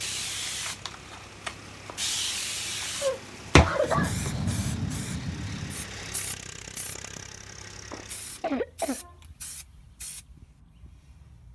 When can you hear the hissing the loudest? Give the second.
4 s.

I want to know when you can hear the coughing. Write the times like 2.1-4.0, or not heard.
3.0-4.2, 7.9-9.2.